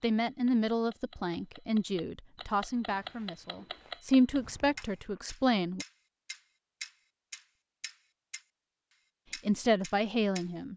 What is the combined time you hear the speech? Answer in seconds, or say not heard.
7 s.